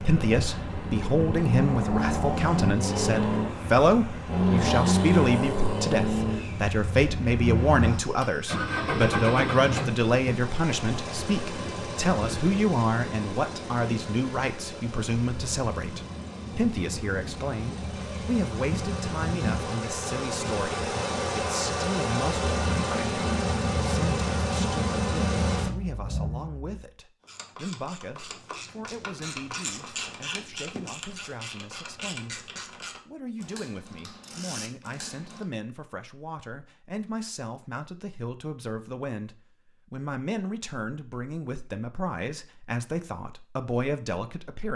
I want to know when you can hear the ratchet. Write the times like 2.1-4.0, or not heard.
27.2-35.5.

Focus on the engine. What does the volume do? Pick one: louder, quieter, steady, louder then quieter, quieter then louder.
quieter then louder.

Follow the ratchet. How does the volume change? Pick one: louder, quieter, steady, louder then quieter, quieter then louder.
louder then quieter.